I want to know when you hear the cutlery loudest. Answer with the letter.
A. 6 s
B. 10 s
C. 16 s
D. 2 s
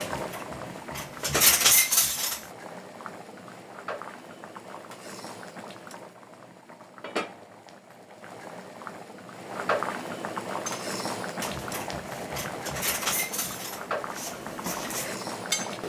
D.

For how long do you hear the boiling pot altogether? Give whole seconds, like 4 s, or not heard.
16 s.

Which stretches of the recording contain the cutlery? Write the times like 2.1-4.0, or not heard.
0.0-2.4, 10.7-15.8.